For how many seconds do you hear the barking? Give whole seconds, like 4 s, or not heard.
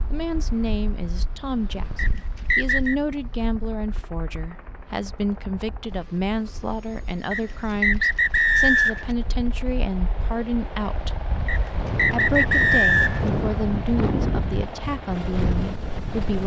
not heard.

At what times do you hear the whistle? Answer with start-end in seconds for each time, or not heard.
1.9-3.0, 7.3-9.1, 11.4-13.3.